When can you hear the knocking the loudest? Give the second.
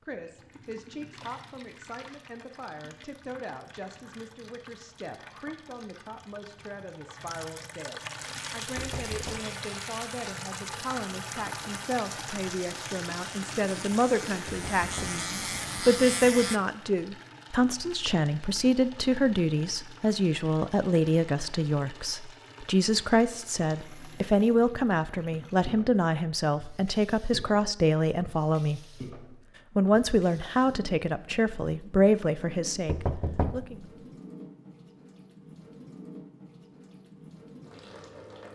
33 s.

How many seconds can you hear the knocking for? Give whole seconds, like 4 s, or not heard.
3 s.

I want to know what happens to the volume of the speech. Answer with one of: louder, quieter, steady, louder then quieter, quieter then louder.
louder.